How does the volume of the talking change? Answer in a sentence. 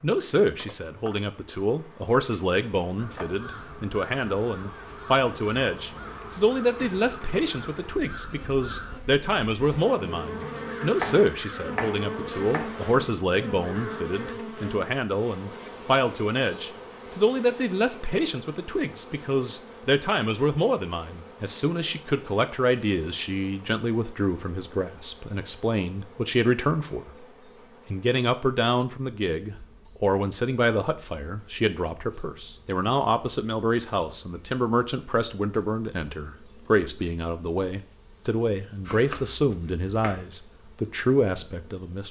The loudness of the talking stays about the same.